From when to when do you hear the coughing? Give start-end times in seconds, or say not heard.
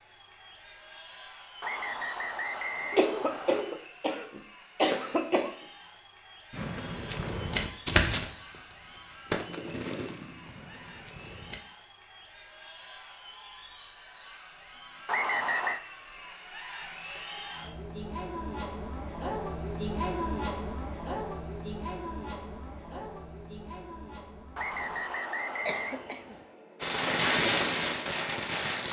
2.9-5.5, 25.6-26.4.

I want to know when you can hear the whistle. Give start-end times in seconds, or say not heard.
1.6-3.6, 15.1-15.8, 24.6-26.1.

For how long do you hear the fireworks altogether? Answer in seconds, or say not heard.
7 s.